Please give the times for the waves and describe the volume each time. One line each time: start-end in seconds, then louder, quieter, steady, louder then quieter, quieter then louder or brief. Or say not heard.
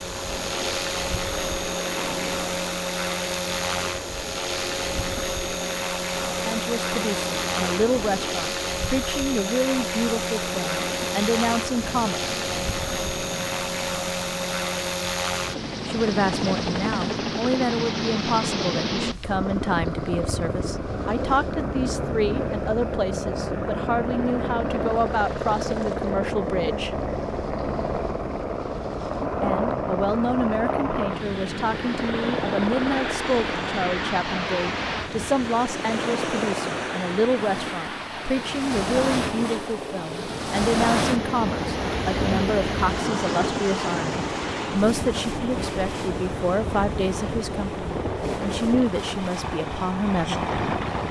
0.0-51.0 louder.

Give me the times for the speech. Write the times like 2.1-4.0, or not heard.
6.5-12.2, 15.8-26.9, 29.4-50.5.